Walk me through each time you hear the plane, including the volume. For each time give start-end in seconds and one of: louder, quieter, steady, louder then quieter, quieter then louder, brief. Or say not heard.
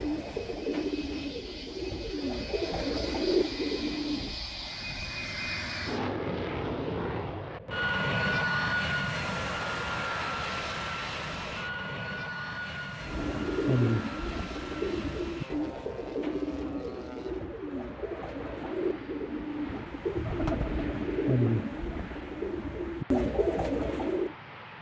0.0-24.7 louder then quieter.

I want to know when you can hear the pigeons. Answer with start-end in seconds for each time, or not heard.
0.0-4.3, 13.0-24.4.